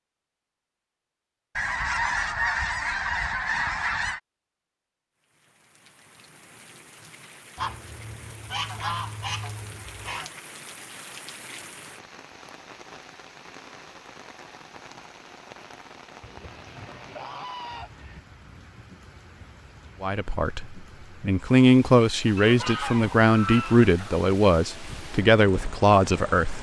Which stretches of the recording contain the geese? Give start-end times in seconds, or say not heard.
1.6-4.2, 7.5-10.3, 16.2-18.2, 22.4-24.3.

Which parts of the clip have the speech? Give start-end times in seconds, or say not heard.
20.0-26.5.